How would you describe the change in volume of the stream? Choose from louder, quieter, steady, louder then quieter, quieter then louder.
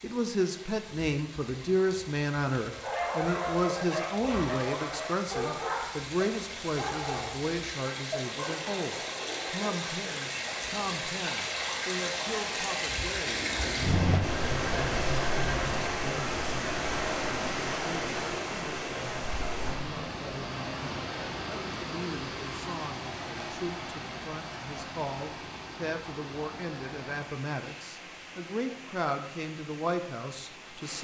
louder then quieter.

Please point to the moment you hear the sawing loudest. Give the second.
15 s.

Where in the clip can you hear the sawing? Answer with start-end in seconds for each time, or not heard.
13.2-15.8.